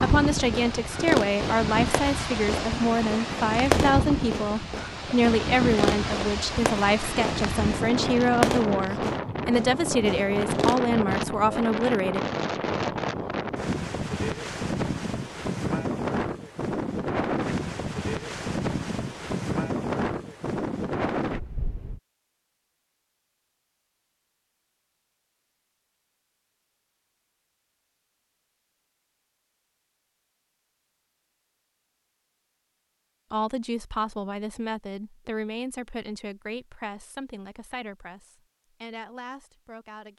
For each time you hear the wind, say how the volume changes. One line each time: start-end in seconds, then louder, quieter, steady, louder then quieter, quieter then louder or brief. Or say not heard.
0.0-22.0 steady.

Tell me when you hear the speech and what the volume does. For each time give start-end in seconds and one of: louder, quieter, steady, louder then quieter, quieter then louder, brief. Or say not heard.
0.0-12.2 steady
33.3-40.1 quieter.